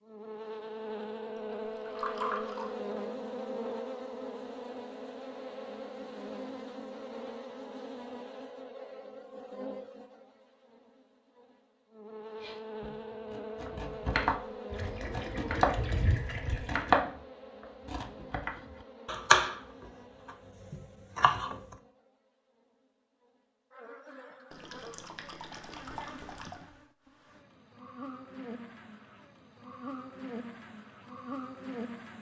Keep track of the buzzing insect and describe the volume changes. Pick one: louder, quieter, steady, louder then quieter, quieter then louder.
quieter then louder.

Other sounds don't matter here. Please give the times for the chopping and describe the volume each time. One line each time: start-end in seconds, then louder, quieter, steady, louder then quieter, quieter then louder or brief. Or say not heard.
12.4-19.6 louder then quieter
20.2-21.6 brief.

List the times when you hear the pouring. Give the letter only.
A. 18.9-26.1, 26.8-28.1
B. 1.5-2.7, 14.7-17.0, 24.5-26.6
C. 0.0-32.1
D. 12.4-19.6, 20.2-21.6
B.